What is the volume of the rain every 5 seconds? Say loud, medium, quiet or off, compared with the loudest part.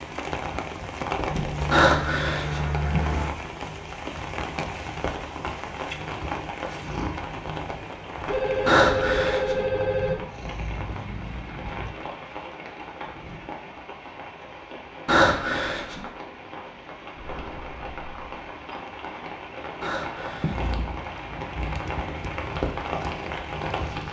loud, loud, medium, medium, loud.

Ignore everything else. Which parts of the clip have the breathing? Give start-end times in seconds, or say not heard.
1.7-2.6, 8.7-9.6, 15.1-16.0, 19.8-20.7.